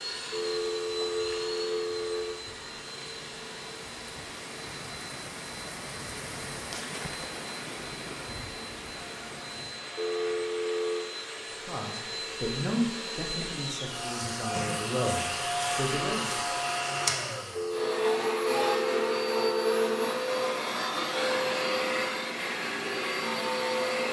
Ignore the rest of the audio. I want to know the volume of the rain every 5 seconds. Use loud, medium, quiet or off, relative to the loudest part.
medium, loud, medium, off, off.